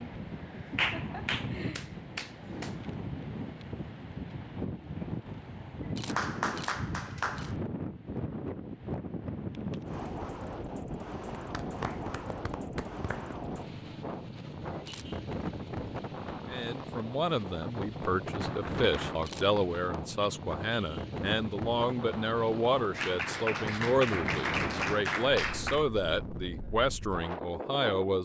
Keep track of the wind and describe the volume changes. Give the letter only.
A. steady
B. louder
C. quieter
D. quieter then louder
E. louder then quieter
A.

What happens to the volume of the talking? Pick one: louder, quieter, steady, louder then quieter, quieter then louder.
steady.